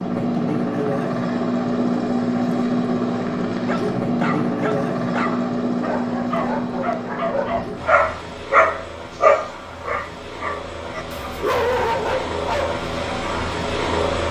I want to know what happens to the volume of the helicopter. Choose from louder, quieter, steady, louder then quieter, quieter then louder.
quieter then louder.